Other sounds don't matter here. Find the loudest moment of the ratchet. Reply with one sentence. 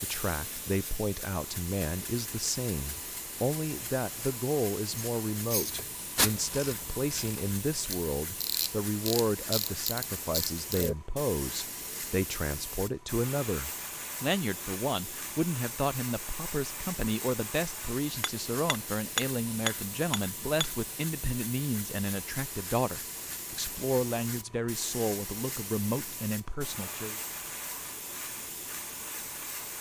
The loudest moment of the ratchet is at 6 seconds.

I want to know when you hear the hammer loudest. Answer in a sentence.
The loudest moment of the hammer is at 19 seconds.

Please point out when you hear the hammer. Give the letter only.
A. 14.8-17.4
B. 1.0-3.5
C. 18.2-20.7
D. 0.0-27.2
C.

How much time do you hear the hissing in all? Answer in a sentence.
The hissing can be heard for 30 seconds in total.